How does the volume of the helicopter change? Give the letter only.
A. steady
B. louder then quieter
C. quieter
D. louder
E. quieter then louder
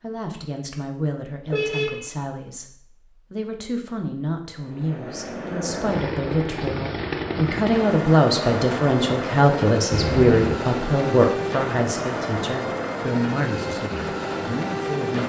A.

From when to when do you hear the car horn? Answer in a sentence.
You can hear the car horn from 1.4 to 2.1 s and from 9.9 to 10.6 s.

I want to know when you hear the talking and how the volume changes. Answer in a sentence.
You can hear the talking from 0.0 to 15.2 s, getting louder then quieter.